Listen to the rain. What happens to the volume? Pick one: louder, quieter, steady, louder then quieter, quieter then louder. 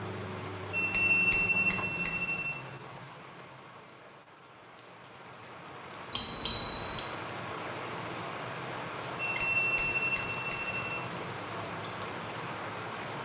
quieter then louder.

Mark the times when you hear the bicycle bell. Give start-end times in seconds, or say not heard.
0.7-2.5, 6.1-7.1, 9.2-11.0.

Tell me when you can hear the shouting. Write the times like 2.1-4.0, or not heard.
not heard.